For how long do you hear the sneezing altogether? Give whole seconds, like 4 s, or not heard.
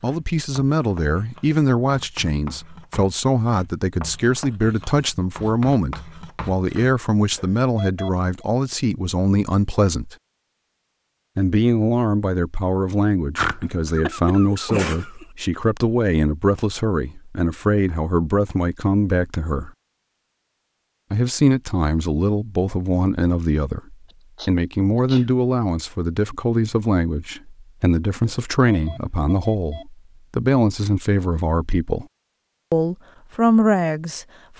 3 s.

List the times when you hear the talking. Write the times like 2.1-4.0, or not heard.
0.0-10.2, 11.3-19.7, 21.1-32.0, 32.7-34.5.